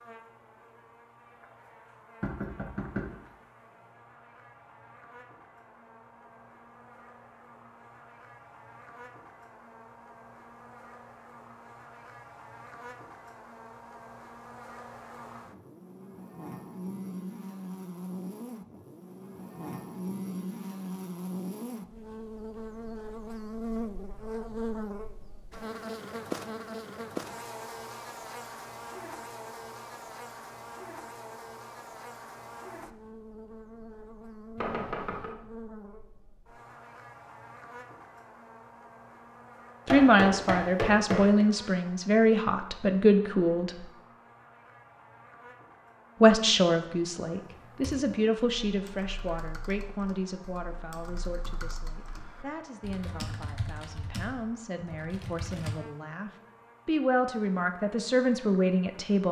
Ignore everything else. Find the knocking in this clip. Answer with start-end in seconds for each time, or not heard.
2.2-3.0, 34.5-35.3, 39.9-41.5.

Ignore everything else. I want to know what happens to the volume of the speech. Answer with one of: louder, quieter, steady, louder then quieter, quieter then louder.
quieter then louder.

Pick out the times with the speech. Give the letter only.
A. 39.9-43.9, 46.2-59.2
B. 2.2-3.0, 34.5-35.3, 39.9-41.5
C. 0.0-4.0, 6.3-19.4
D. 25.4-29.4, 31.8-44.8
A.